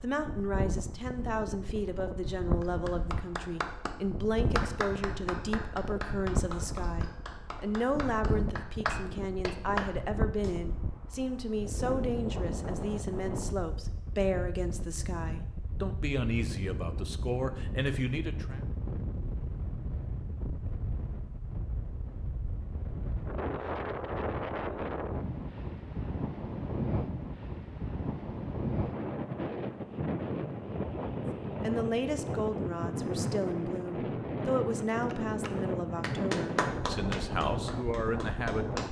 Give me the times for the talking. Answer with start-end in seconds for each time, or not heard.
0.0-18.6, 31.6-38.8.